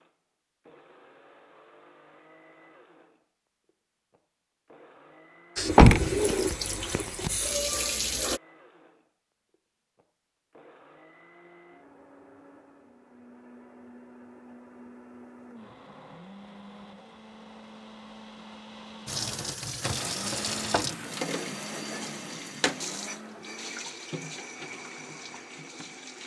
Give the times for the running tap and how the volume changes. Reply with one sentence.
You can hear the running tap briefly from 5.5 to 8.4 s; and from 19.1 to 26.2 s, getting quieter.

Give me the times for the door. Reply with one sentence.
You can hear the door from 5.7 to 7.3 s.